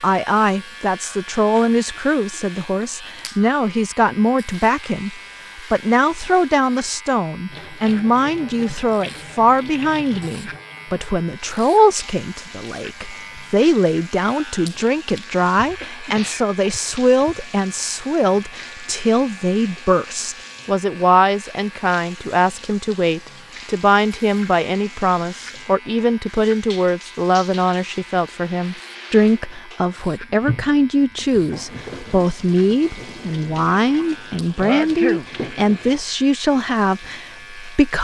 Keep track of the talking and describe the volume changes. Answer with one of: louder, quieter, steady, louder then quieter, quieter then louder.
steady.